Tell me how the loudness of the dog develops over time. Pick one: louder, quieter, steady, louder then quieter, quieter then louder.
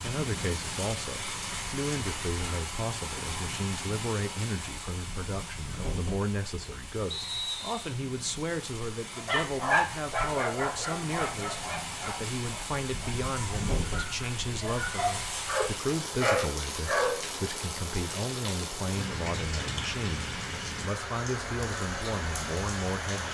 quieter then louder.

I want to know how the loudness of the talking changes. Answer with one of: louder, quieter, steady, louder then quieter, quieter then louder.
steady.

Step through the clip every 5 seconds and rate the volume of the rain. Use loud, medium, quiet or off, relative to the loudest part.
loud, medium, loud, loud, loud.